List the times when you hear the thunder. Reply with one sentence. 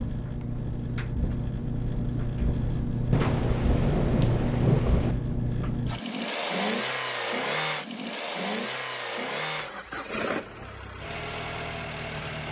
The thunder can be heard from 3.1 to 5.2 s.